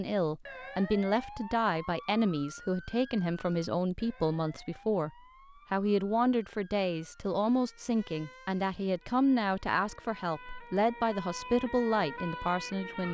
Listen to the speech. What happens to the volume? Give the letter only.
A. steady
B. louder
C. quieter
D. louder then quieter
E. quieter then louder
A.